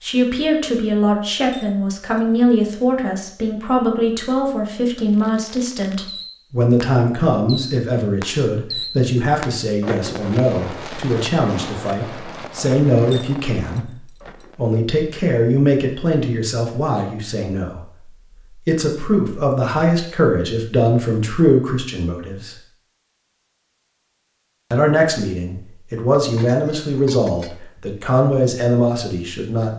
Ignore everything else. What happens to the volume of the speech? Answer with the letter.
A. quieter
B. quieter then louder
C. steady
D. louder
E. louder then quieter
C.